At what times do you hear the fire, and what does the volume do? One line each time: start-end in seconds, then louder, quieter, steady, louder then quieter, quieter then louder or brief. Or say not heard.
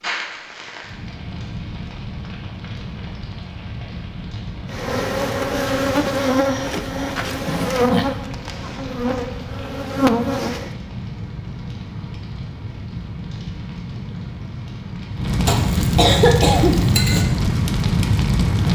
0.0-18.7 louder.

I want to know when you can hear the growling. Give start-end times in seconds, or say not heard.
7.5-8.1.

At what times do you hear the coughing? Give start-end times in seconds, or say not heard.
15.4-17.2.